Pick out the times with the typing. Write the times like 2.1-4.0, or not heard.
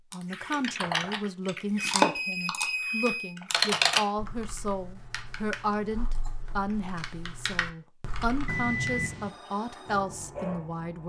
0.1-8.9.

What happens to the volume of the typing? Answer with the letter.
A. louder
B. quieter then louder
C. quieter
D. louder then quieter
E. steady
B.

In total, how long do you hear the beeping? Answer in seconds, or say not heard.
2 s.